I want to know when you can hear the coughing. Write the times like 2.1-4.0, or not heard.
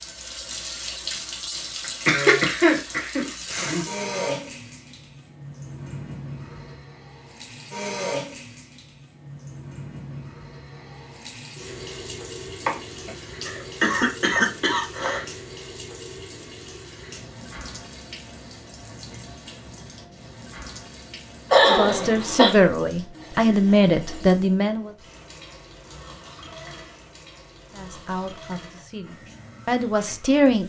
2.0-3.9, 12.7-15.2, 21.5-22.5.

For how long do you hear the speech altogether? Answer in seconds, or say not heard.
6 s.